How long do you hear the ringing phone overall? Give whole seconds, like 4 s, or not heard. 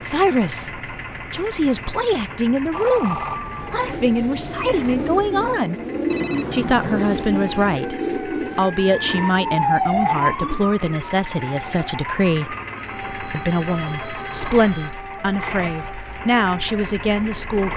4 s.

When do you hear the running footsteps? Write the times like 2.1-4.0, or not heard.
not heard.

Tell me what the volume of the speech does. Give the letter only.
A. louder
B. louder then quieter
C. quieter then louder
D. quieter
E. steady
E.